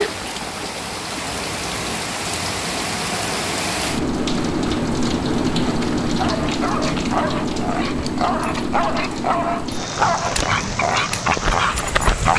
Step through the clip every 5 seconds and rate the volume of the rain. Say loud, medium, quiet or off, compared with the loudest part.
loud, loud, medium.